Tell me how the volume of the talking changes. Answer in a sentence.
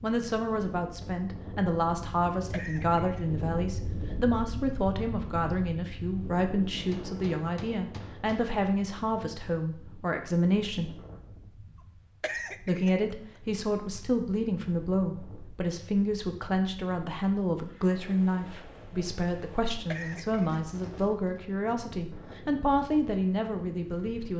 The volume of the talking stays about the same.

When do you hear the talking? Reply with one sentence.
The talking can be heard from 0.0 to 10.9 s and from 12.6 to 24.3 s.